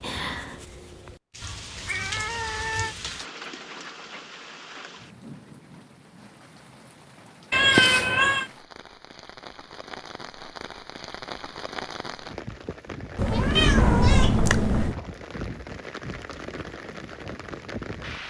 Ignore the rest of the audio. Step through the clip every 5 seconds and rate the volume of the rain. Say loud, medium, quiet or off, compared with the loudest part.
loud, medium, loud, loud.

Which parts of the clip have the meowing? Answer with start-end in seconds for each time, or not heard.
1.4-3.0, 7.5-8.4, 13.2-14.9.